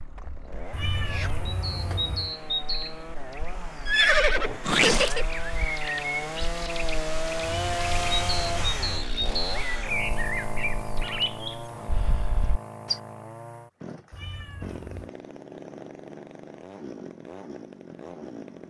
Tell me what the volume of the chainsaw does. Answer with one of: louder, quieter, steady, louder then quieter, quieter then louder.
louder then quieter.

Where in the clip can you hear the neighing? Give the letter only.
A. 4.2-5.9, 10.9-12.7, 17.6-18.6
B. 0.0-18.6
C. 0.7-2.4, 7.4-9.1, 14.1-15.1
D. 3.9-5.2
D.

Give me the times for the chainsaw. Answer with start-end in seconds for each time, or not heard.
0.0-18.6.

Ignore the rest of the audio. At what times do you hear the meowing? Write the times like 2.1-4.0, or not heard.
0.7-2.4, 7.4-9.1, 14.1-15.1.